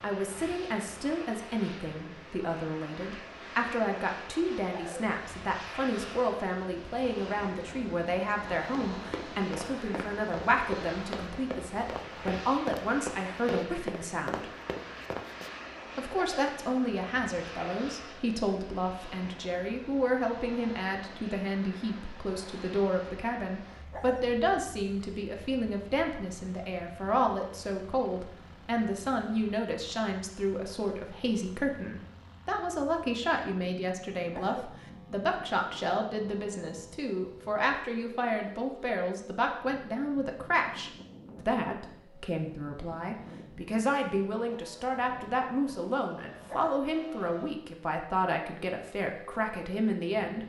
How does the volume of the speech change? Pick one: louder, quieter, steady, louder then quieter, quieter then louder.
steady.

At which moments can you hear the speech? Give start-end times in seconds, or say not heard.
0.0-14.5, 15.9-50.4.